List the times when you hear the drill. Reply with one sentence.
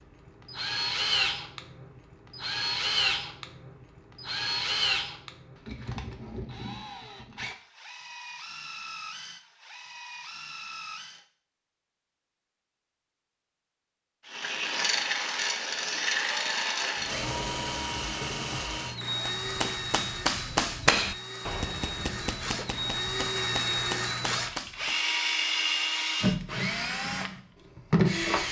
The drill can be heard from 0.2 to 11.2 s and from 14.2 to 28.4 s.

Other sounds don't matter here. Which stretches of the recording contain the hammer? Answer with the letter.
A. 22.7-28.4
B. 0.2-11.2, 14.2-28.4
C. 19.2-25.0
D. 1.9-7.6
C.